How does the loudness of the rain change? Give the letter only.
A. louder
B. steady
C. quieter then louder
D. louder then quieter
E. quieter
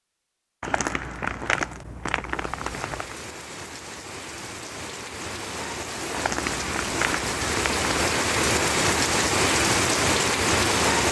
A.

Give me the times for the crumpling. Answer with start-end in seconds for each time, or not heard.
0.6-3.1, 6.1-7.8.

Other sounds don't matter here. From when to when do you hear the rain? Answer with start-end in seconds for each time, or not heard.
2.2-11.0.